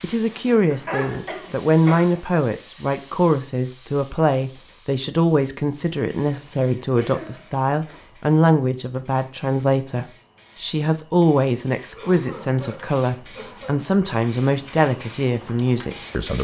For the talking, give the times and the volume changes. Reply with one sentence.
The talking can be heard from 0.0 to 16.4 s, at a steady volume.